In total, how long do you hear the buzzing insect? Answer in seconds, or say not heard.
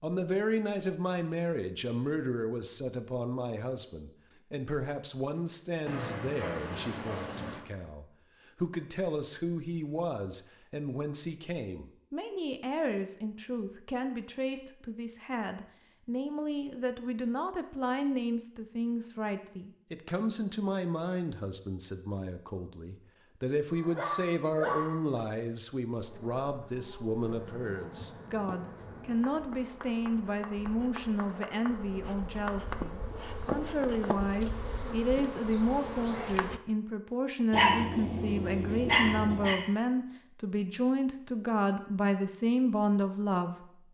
11 s.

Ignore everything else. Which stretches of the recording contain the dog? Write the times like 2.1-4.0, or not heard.
5.8-7.7, 23.7-25.2, 37.5-39.5.